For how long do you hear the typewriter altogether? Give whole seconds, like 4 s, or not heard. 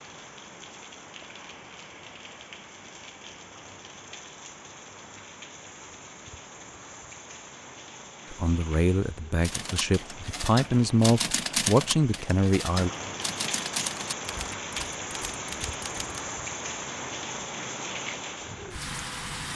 7 s.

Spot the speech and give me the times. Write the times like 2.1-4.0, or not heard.
8.3-12.9.